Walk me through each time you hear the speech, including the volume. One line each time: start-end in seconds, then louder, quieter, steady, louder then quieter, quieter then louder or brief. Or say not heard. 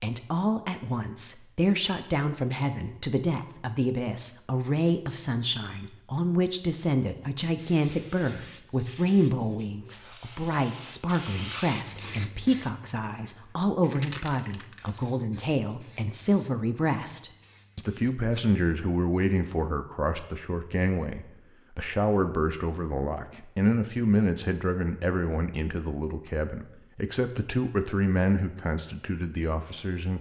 0.0-30.1 steady.